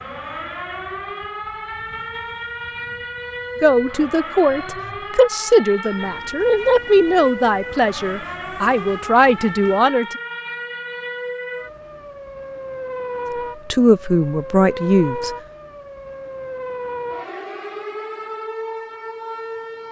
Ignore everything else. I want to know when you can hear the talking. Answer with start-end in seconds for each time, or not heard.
3.6-10.1, 13.7-15.3.